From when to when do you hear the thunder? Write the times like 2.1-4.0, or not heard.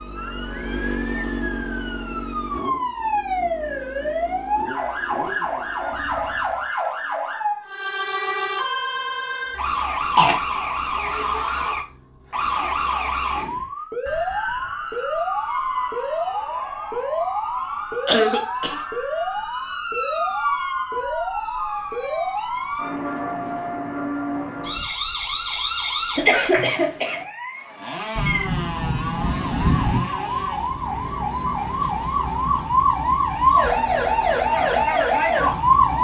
28.1-30.0.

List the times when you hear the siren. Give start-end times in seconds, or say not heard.
0.0-35.9.